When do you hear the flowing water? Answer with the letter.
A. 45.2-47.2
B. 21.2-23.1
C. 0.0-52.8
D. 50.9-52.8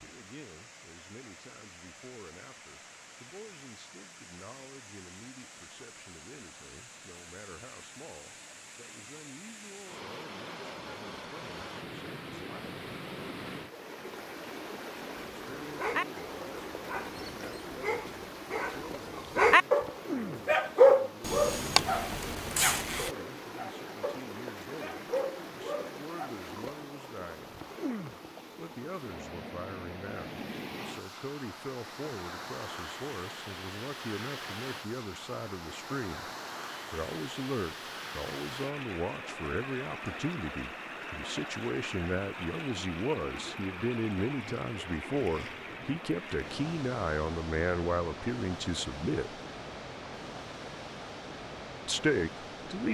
C.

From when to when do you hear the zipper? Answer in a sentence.
The zipper can be heard from 21.2 to 23.1 s.